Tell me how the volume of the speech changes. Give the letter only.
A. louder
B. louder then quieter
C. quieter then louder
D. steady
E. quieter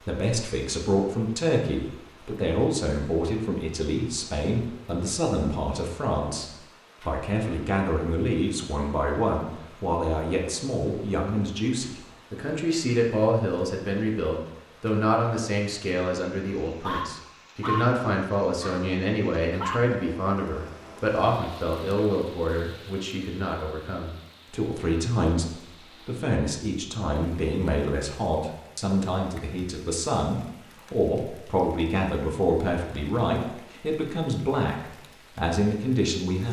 D.